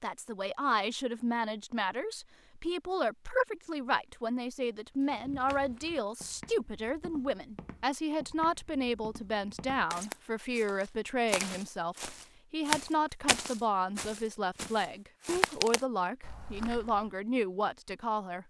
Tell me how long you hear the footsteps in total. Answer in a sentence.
The footsteps can be heard for 12 seconds in total.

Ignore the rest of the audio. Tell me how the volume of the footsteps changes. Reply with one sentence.
The loudness of the footsteps goes up.